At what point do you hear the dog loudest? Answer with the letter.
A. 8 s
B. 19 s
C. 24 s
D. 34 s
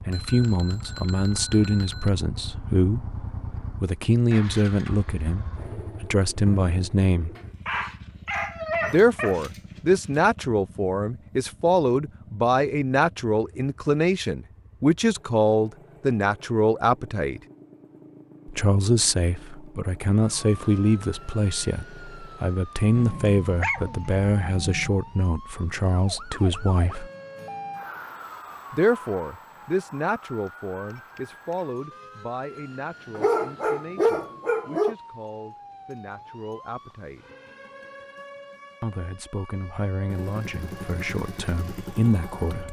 D.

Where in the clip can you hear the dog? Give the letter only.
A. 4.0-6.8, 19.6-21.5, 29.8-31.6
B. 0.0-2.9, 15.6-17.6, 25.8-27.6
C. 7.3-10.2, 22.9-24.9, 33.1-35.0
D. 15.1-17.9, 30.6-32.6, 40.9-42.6
C.